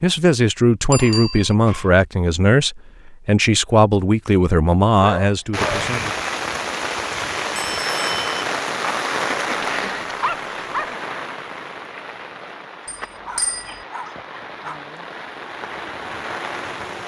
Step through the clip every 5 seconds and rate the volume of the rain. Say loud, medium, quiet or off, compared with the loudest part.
off, loud, medium, medium.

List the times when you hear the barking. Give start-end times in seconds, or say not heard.
0.9-2.0, 5.0-5.8, 9.5-10.9, 13.1-14.8.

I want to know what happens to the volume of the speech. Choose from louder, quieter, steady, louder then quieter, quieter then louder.
steady.